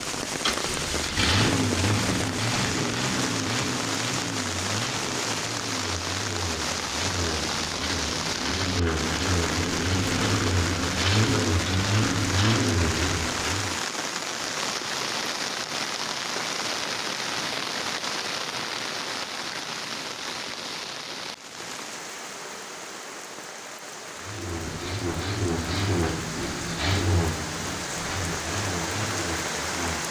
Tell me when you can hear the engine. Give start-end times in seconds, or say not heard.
0.2-13.8, 24.1-30.0.